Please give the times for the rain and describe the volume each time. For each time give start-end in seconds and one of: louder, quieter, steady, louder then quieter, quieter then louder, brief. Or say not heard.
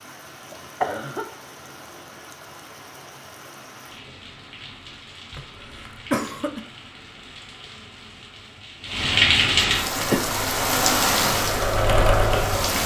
0.0-12.8 louder.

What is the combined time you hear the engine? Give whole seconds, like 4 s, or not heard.
3 s.